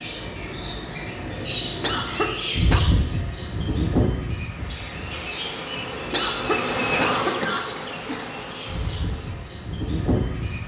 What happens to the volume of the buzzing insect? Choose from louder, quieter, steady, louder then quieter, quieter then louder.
louder then quieter.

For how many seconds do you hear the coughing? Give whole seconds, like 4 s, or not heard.
3 s.